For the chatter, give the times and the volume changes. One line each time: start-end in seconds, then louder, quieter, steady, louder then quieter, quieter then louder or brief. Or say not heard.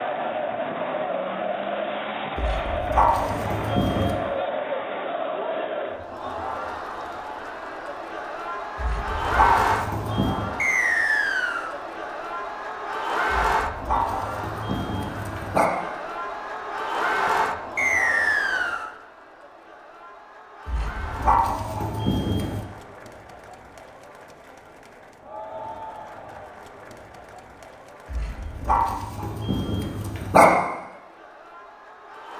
0.0-32.3 quieter.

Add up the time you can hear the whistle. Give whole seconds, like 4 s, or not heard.
2 s.